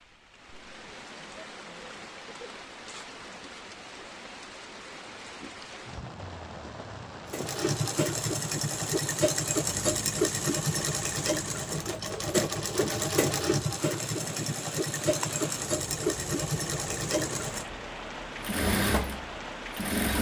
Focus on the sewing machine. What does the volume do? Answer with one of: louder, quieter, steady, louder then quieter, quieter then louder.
steady.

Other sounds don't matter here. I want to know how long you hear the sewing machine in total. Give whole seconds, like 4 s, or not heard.
13 s.